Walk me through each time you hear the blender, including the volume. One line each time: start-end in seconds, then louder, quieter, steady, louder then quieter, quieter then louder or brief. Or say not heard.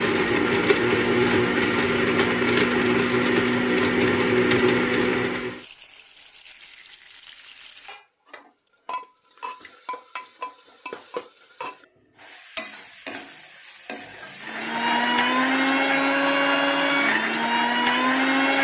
0.0-5.7 steady
14.4-18.5 steady.